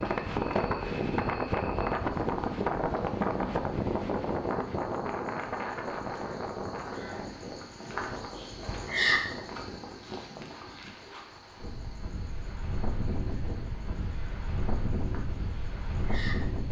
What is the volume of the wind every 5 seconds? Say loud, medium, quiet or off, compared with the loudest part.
loud, medium, medium, medium.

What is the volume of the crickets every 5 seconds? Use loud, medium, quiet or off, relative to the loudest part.
quiet, loud, quiet, medium.